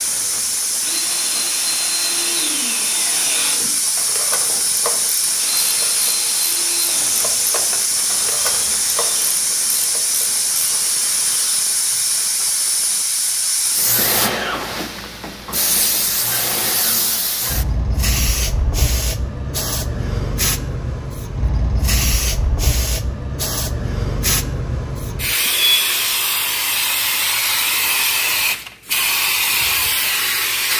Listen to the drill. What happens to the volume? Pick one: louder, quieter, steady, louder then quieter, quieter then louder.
quieter.